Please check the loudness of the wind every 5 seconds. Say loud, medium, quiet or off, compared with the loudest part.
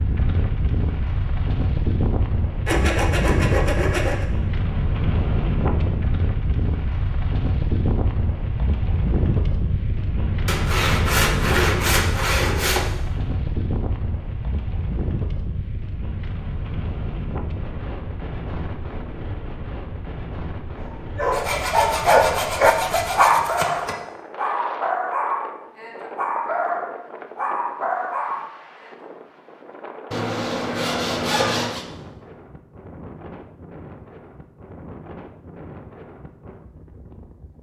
loud, loud, loud, medium, medium, quiet, quiet, quiet.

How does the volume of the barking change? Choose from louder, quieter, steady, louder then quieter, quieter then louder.
quieter.